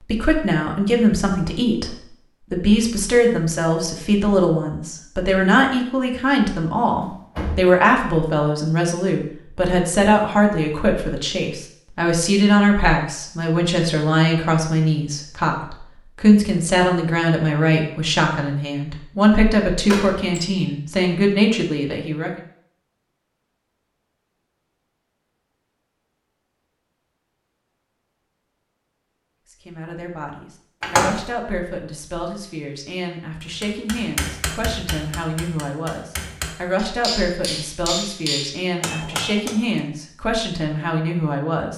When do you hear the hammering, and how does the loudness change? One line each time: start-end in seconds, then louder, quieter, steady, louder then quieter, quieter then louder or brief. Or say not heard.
33.4-39.8 quieter then louder.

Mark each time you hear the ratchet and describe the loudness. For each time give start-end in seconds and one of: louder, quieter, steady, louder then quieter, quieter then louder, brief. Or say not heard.
not heard.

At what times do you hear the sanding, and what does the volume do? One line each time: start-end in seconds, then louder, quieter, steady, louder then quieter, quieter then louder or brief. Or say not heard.
not heard.